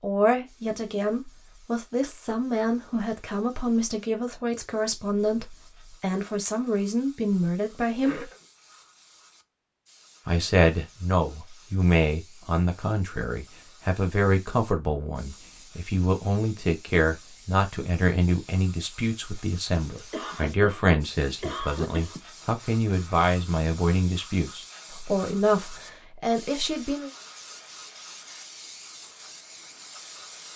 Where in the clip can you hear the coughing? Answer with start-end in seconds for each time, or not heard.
8.0-8.4, 20.1-22.2.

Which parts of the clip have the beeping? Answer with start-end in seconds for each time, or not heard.
not heard.